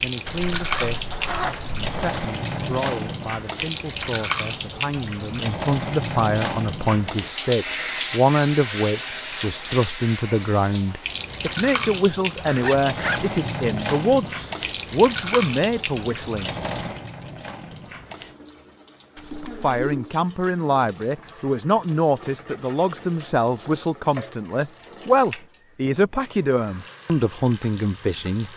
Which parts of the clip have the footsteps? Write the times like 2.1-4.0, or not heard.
not heard.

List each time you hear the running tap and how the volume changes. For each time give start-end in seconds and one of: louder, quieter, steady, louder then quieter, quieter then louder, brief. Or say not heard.
0.0-28.5 quieter.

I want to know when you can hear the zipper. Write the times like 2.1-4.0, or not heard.
0.2-2.2, 12.4-13.3, 19.1-20.1.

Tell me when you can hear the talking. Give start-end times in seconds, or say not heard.
0.0-1.1, 1.8-16.5, 19.6-28.5.